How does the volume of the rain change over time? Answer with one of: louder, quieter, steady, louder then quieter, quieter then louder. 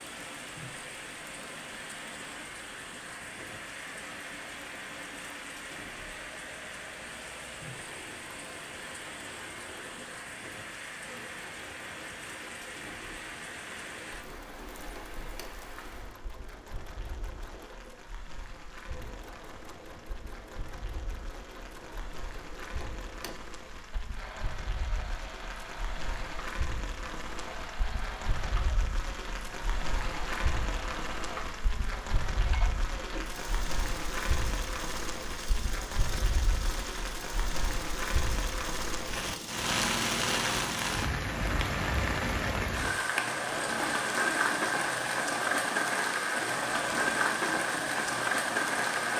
louder.